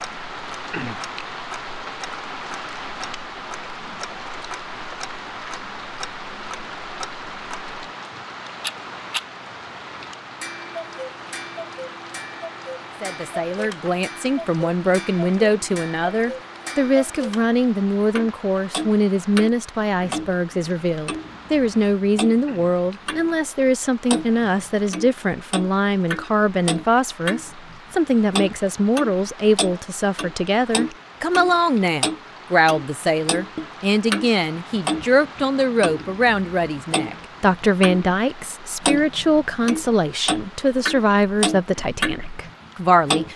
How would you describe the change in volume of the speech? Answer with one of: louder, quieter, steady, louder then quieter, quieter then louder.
steady.